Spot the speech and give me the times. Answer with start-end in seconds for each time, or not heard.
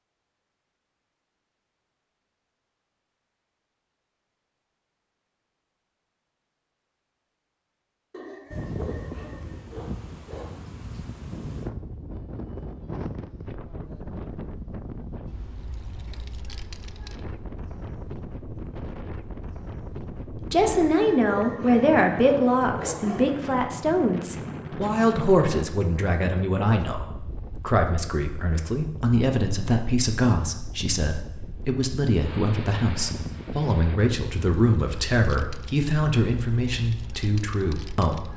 20.5-38.3.